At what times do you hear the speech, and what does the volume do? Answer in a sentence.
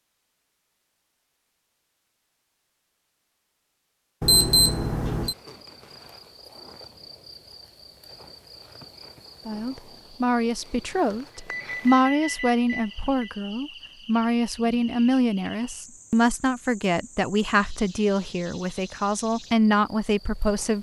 The speech can be heard from 9.4 to 20.7 s, at a steady volume.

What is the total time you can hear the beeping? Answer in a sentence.
The beeping can be heard for 3 seconds in total.